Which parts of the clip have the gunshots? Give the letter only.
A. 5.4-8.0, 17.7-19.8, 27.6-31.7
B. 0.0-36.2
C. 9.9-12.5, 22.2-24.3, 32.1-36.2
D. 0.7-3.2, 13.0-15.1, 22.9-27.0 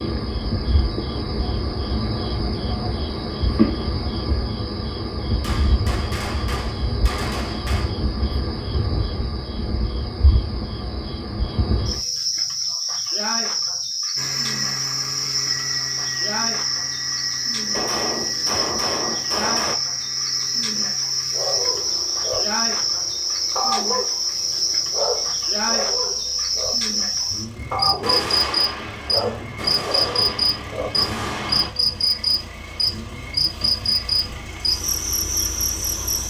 A.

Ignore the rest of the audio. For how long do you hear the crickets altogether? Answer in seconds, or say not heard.
36 s.